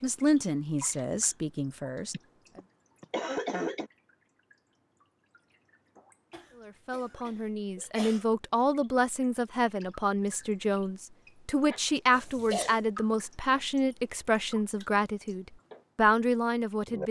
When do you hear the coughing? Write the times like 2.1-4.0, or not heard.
2.1-3.9, 6.3-8.2, 12.1-12.8.